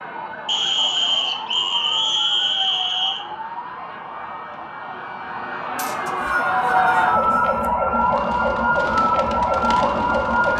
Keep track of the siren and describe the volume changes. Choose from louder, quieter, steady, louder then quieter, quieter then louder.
louder.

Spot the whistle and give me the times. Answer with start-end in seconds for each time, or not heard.
0.5-3.2, 5.8-7.7.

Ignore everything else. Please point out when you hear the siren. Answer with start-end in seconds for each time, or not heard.
0.0-10.5.